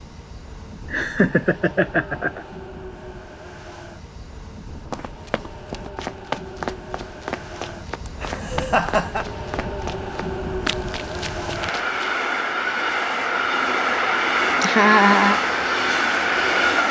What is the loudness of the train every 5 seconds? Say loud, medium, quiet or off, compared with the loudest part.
quiet, quiet, loud, loud.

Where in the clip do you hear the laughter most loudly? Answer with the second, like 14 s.
15 s.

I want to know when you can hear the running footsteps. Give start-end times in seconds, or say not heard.
4.9-12.1.